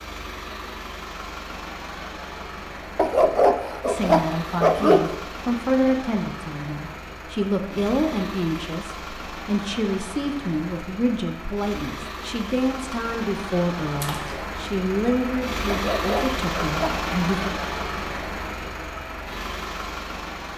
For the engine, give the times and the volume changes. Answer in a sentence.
The engine can be heard from 0.0 to 20.5 s, getting louder.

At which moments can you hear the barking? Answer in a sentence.
The barking can be heard from 3.0 to 5.1 s and from 15.7 to 17.1 s.